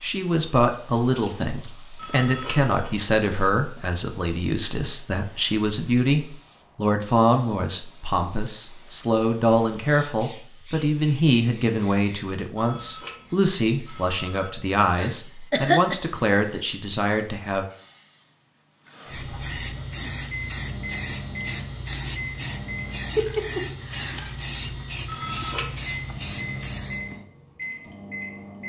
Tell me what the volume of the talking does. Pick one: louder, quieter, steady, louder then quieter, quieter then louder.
steady.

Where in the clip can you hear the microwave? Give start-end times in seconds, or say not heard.
19.1-23.1, 25.2-28.6.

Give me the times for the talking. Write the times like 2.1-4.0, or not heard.
0.0-17.6.